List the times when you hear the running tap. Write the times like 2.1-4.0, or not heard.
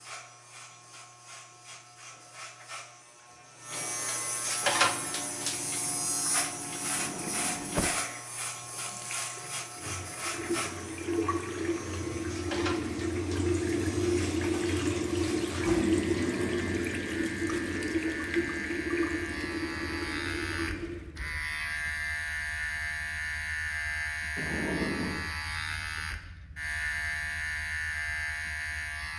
4.7-21.1.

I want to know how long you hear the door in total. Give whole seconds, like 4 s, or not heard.
3 s.